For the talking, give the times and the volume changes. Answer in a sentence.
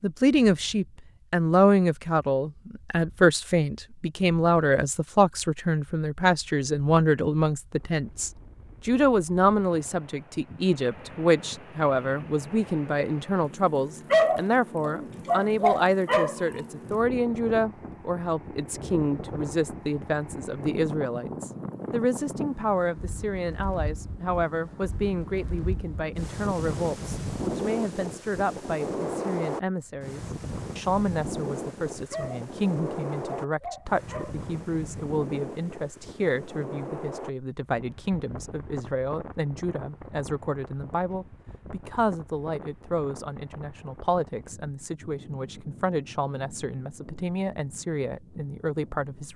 The talking can be heard from 0.0 to 49.3 s, getting quieter.